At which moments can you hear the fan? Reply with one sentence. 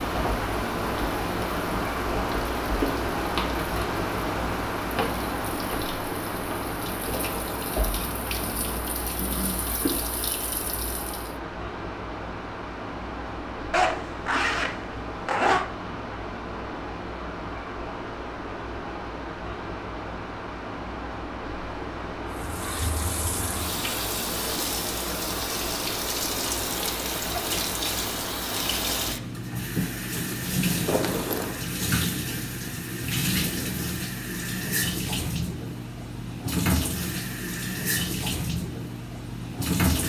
The fan can be heard from 0.0 to 29.1 s.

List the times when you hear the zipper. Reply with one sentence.
The zipper can be heard from 7.0 to 7.5 s, from 13.7 to 15.7 s and from 30.9 to 31.6 s.